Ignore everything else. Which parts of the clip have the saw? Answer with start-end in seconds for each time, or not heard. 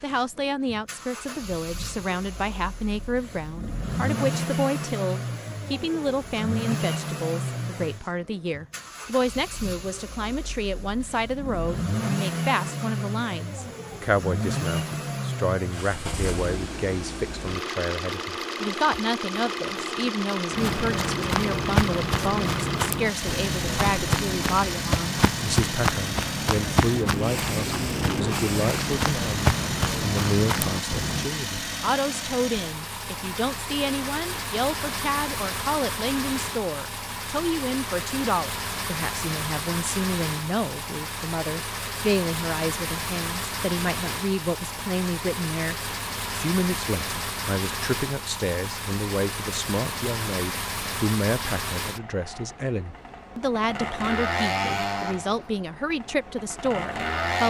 not heard.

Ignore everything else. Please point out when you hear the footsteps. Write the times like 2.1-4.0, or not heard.
20.5-31.3.